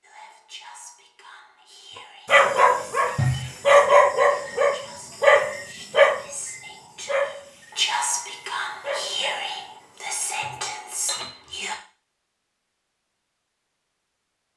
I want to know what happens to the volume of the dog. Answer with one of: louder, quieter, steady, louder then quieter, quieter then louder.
quieter.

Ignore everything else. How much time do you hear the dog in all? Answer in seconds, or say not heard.
8 s.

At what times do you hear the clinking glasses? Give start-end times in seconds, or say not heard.
3.1-3.8, 10.4-11.3.